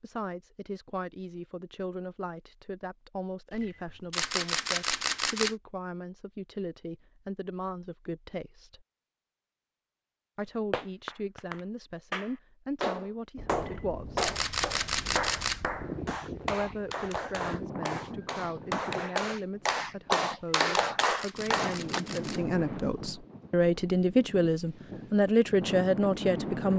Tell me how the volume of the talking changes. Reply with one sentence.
The loudness of the talking goes up.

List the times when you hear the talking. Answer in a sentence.
The talking can be heard from 0.0 to 8.8 s, from 10.3 to 14.3 s and from 16.4 to 26.7 s.